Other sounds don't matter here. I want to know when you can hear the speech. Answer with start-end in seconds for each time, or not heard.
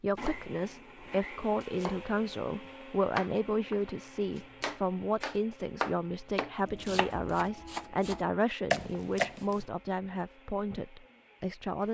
0.0-11.8.